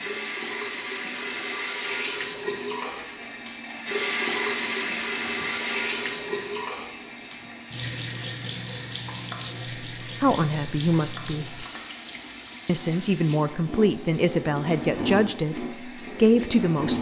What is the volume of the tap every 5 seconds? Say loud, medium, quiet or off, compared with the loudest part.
loud, loud, medium, loud.